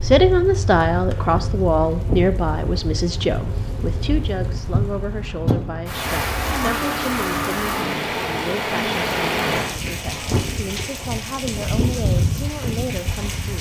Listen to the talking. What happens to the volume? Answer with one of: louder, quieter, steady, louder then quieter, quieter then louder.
quieter.